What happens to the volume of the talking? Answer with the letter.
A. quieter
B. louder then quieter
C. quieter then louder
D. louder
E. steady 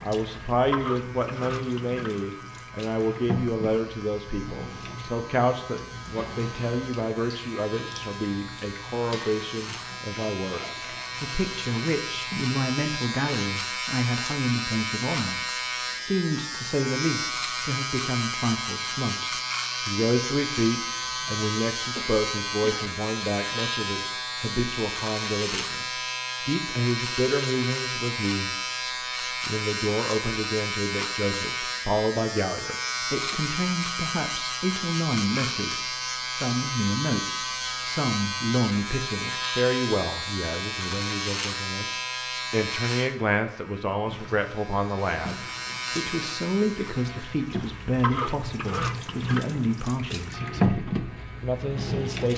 E.